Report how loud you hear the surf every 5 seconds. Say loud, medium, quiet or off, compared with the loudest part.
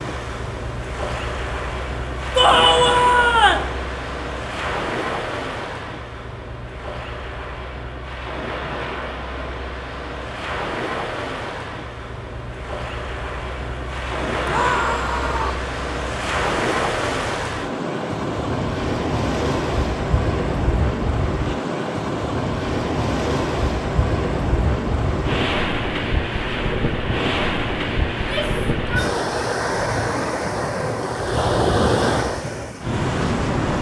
medium, medium, medium, loud, loud, loud, loud.